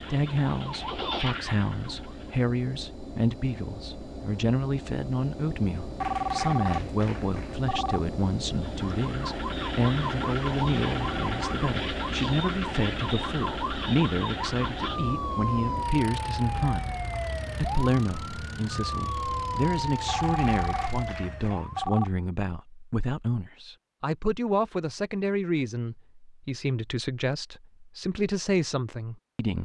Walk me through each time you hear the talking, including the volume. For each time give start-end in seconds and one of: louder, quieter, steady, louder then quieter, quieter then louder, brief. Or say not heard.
0.0-29.5 steady.